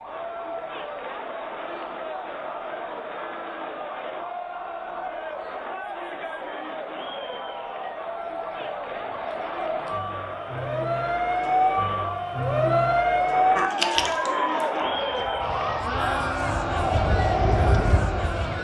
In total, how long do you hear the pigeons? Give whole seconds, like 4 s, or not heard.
not heard.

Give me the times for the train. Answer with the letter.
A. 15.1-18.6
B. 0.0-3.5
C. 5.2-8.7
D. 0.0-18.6
A.